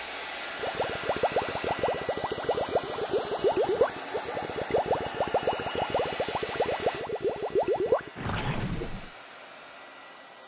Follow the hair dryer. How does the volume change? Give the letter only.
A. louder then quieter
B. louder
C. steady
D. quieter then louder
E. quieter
E.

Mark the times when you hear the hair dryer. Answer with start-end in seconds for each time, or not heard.
0.0-10.4.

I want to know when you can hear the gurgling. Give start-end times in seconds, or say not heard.
0.6-9.1.